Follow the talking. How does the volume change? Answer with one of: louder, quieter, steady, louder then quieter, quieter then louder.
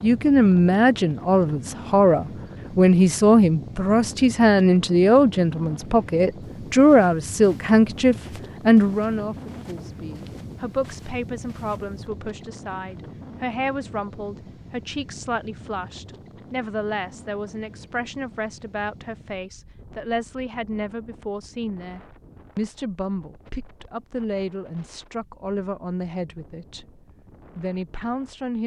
quieter.